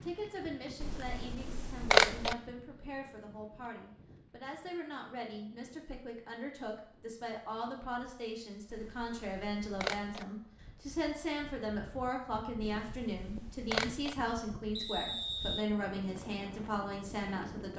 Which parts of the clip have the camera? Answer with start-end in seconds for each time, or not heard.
0.8-2.4, 8.7-10.2, 12.8-14.2.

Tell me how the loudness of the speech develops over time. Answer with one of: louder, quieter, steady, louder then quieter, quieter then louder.
louder.